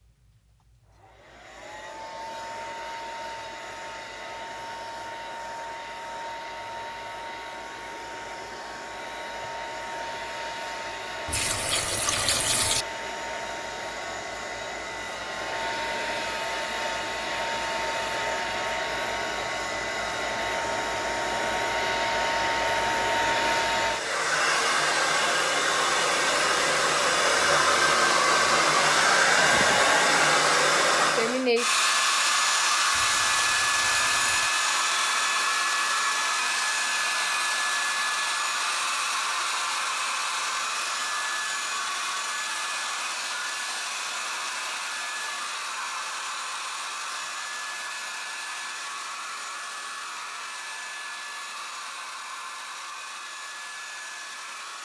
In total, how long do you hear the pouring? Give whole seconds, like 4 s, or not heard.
3 s.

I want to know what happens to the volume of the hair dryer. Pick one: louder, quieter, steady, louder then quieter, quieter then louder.
louder then quieter.